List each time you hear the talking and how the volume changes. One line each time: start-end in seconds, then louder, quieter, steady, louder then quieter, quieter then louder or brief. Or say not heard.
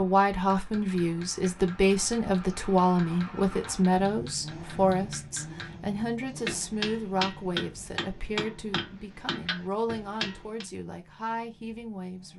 0.0-12.3 quieter.